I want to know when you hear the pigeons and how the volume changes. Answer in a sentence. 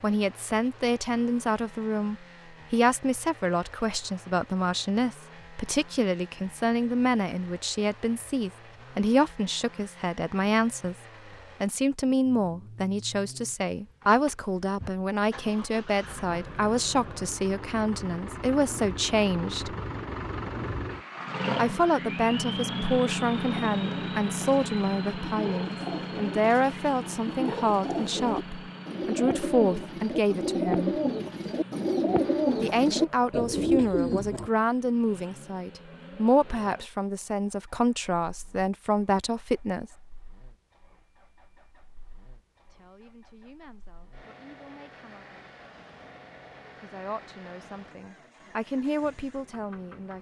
The pigeons can be heard from 23.4 to 34.5 s, getting louder.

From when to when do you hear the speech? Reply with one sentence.
You can hear the speech from 0.0 to 10.9 s, from 11.6 to 19.8 s, from 21.6 to 31.0 s, from 32.6 to 39.9 s, from 42.7 to 45.5 s and from 46.8 to 50.1 s.